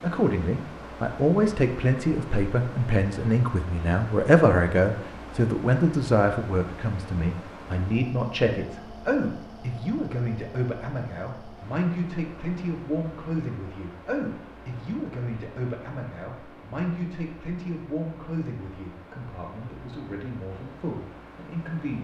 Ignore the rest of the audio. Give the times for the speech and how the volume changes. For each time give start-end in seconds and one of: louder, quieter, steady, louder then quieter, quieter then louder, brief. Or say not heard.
0.0-21.9 quieter.